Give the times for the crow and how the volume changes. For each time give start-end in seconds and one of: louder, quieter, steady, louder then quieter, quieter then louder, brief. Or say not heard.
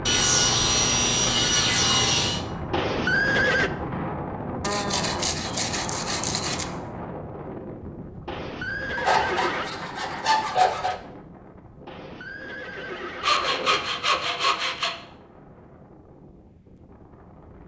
not heard.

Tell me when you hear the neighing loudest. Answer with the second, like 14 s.
3 s.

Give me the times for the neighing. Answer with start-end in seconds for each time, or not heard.
2.7-3.7, 8.2-9.7, 11.8-13.9.